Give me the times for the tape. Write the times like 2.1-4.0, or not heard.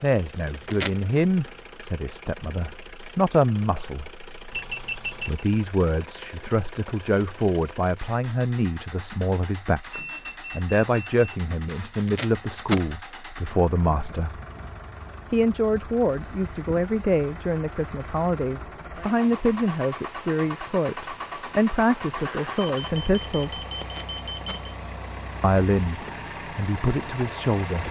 0.3-1.1, 11.8-12.8, 23.8-24.6.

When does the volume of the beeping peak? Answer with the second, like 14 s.
5 s.